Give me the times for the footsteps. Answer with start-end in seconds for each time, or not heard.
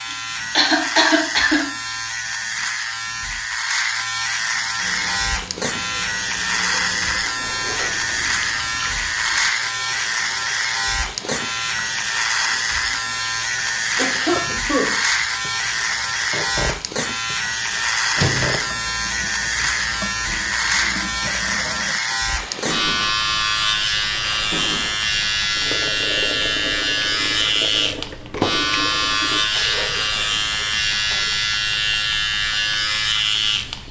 not heard.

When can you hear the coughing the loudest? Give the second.
1 s.